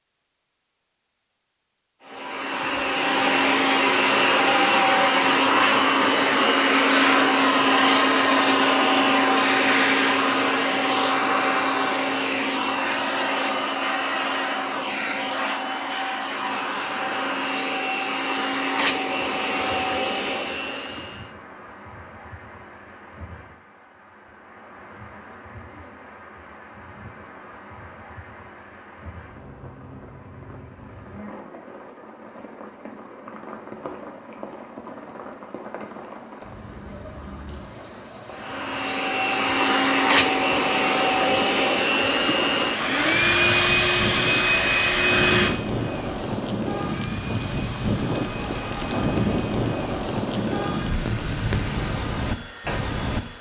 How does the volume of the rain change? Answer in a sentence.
The loudness of the rain goes up.